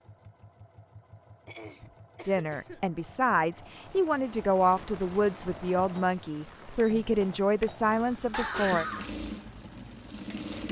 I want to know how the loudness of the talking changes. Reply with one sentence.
The volume of the talking stays about the same.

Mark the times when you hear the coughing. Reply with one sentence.
You can hear the coughing from 1.4 to 2.8 s and from 7.8 to 9.1 s.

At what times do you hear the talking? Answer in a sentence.
You can hear the talking from 2.2 to 8.8 s.